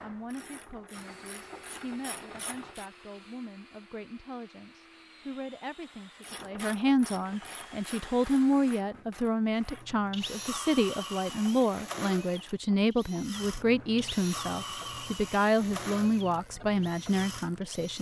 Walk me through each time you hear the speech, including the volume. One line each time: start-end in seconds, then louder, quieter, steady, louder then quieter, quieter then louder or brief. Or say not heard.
0.0-17.9 louder.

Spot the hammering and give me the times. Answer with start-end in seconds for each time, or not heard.
not heard.